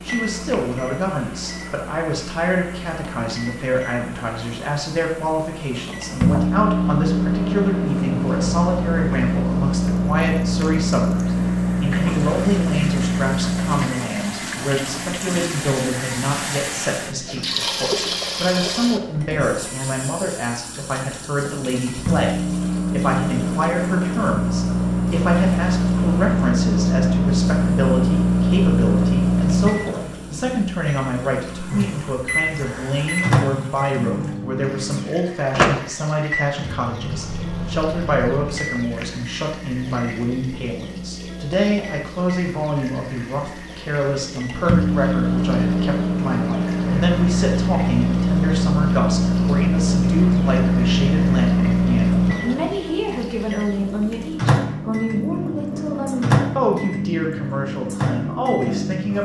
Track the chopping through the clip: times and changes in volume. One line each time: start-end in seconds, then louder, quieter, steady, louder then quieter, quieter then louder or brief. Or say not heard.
not heard.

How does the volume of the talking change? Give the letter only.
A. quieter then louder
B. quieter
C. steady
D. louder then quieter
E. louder
C.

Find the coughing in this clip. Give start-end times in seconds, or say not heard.
not heard.